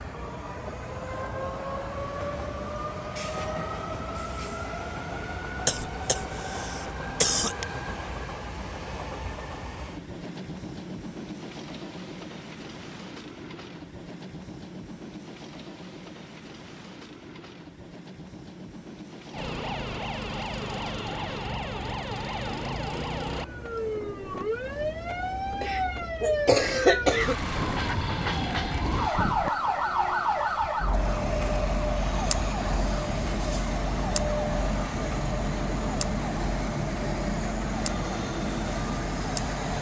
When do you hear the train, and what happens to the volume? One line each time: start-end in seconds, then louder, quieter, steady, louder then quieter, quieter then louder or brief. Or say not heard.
0.0-39.7 quieter then louder.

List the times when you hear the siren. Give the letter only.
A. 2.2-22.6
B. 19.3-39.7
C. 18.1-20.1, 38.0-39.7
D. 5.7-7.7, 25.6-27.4
B.